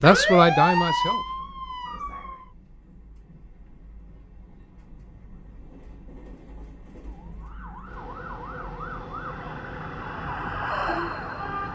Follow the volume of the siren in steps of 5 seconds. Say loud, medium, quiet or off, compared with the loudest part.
loud, quiet, medium.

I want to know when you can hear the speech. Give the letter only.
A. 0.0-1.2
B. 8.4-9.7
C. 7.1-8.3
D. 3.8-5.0
A.